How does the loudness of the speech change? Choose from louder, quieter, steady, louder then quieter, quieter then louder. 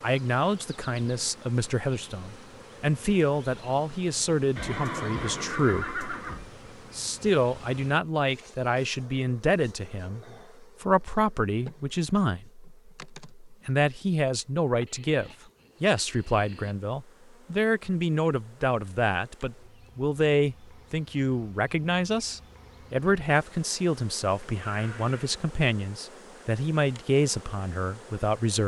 steady.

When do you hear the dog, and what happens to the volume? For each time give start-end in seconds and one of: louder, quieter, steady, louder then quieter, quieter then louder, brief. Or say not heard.
not heard.